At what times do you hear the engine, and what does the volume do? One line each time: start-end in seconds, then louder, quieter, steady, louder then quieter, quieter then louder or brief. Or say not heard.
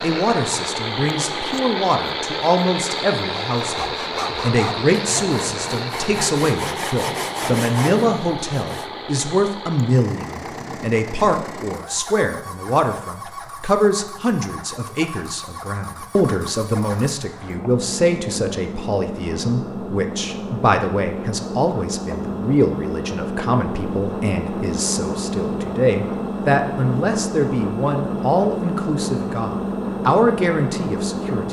0.0-31.4 quieter then louder.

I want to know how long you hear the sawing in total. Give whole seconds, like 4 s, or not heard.
5 s.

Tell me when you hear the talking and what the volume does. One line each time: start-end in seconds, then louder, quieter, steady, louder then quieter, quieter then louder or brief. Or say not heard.
0.0-31.4 steady.